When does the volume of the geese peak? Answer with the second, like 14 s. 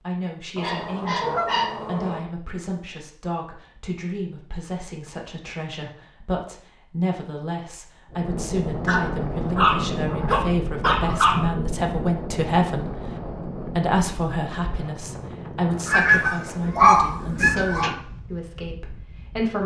16 s.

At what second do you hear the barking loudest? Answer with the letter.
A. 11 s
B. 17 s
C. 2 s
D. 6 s
B.